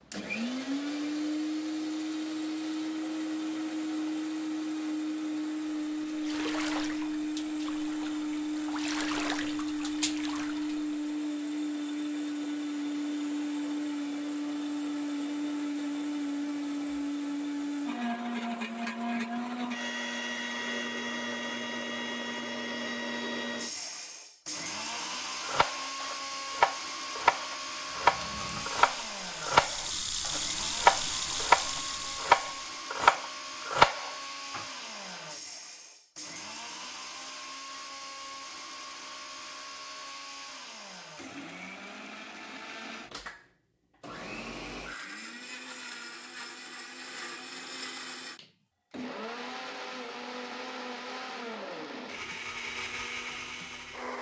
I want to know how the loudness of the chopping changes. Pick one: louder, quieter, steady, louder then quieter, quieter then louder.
louder.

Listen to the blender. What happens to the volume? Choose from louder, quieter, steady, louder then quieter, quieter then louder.
quieter.